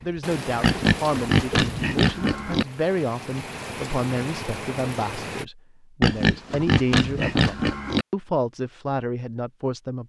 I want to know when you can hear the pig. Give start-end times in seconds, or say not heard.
0.6-2.6, 6.0-8.1.